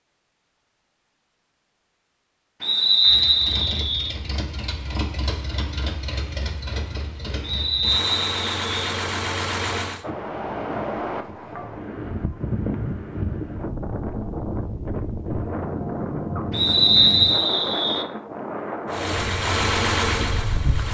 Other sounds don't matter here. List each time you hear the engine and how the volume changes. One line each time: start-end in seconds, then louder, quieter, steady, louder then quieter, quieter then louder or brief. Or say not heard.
3.0-10.1 louder
18.9-20.8 brief.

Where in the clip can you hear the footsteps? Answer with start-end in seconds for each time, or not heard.
not heard.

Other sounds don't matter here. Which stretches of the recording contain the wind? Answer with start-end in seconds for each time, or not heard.
10.0-20.8.